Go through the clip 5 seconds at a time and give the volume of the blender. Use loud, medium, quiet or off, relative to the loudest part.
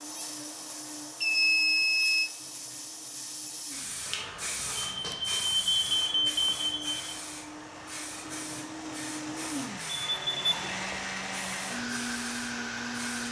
quiet, medium, loud.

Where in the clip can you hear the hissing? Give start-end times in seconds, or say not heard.
0.0-13.2.